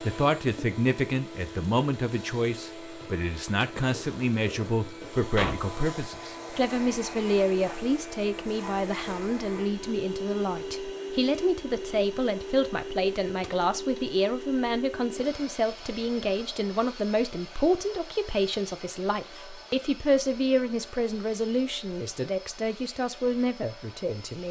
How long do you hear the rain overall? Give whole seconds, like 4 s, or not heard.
not heard.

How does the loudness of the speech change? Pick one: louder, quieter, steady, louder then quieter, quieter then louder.
steady.